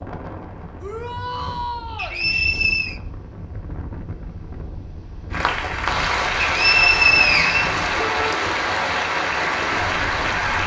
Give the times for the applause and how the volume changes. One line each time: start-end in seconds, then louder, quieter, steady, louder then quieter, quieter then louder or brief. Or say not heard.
5.3-10.6 steady.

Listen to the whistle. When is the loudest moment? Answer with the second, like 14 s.
7 s.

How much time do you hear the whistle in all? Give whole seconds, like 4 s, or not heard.
3 s.